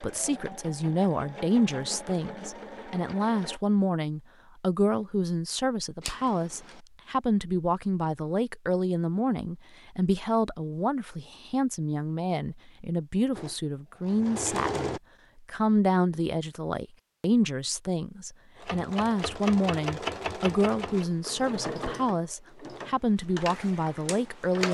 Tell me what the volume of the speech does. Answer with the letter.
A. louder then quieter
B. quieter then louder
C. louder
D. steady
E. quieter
D.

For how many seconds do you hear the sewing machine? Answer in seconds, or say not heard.
11 s.